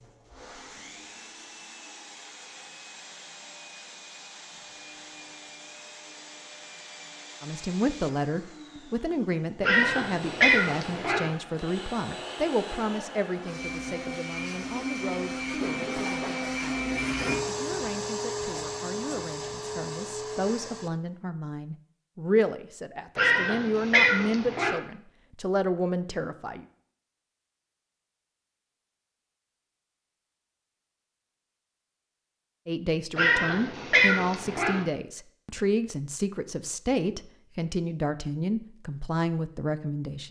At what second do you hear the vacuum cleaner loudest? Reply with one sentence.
The loudest moment of the vacuum cleaner is at 17 seconds.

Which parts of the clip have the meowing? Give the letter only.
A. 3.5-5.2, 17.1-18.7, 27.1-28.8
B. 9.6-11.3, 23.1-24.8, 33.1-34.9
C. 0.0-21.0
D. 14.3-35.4
B.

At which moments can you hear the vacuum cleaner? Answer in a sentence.
You can hear the vacuum cleaner from 0.0 to 21.0 s.